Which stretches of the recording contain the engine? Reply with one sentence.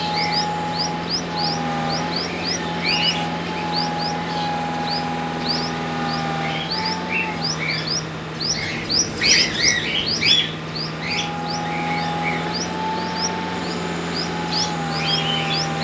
You can hear the engine from 0.0 to 15.7 s.